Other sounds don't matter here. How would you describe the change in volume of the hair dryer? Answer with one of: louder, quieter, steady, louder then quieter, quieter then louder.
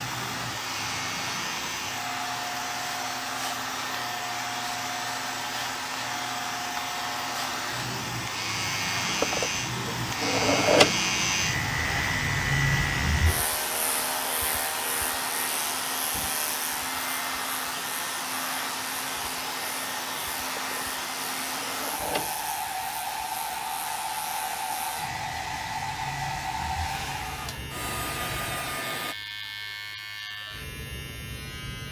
steady.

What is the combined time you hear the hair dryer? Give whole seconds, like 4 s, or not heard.
29 s.